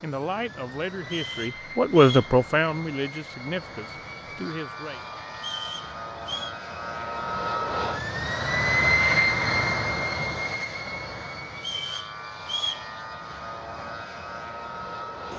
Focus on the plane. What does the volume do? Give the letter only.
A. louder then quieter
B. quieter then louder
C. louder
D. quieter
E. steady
A.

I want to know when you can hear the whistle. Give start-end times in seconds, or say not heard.
1.0-2.4, 5.3-6.5, 11.6-12.8.